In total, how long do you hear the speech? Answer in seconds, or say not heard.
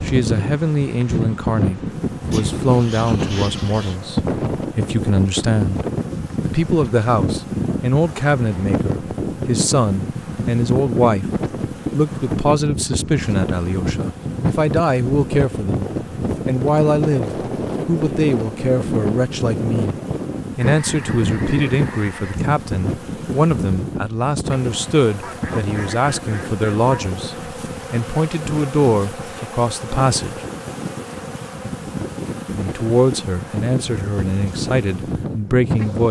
32 s.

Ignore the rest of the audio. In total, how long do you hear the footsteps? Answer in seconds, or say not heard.
not heard.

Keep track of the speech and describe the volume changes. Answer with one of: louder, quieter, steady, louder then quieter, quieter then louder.
steady.